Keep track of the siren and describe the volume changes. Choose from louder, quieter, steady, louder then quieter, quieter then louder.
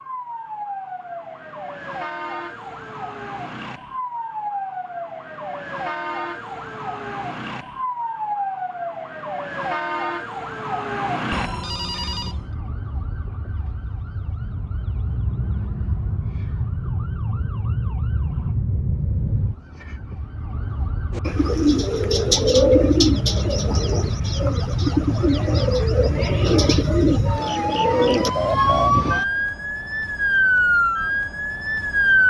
louder.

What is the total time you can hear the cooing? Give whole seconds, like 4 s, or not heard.
8 s.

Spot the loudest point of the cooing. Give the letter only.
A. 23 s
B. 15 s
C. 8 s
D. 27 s
A.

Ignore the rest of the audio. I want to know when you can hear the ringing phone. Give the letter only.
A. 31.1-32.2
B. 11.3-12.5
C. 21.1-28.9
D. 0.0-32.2
B.